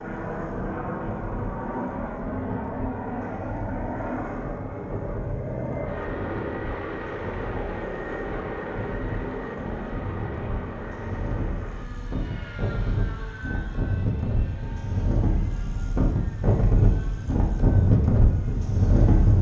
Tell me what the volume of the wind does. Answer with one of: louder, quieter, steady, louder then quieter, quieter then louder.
louder.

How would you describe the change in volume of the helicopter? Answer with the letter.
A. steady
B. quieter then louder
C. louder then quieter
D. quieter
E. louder
D.